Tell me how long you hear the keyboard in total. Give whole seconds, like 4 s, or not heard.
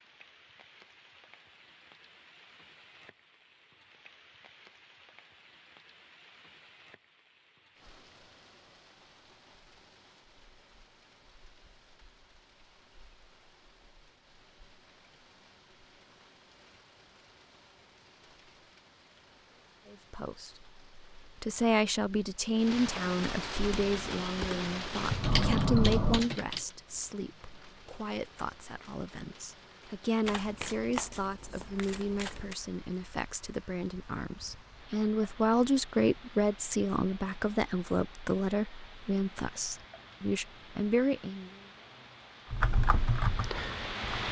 5 s.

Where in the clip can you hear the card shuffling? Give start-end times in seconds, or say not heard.
30.2-32.5.